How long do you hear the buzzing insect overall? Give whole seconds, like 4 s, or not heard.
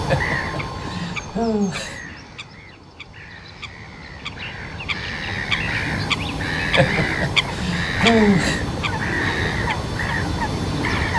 not heard.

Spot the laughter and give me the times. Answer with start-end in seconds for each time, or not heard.
0.1-2.0, 6.8-8.6.